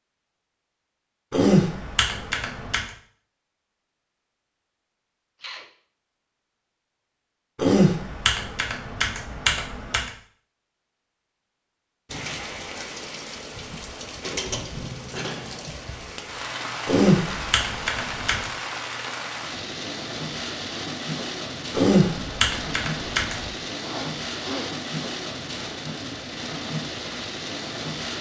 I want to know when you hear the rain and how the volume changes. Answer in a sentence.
You can hear the rain from 12.1 to 28.1 s, at a steady volume.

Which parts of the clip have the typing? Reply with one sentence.
The typing can be heard from 1.3 to 2.9 s, from 7.5 to 10.1 s, from 16.9 to 18.4 s and from 21.7 to 23.4 s.